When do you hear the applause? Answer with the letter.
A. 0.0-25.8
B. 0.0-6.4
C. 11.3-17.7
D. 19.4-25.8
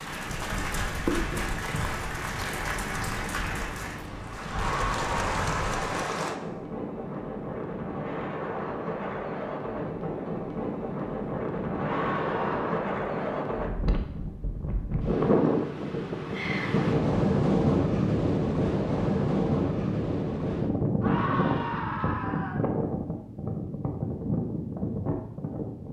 B.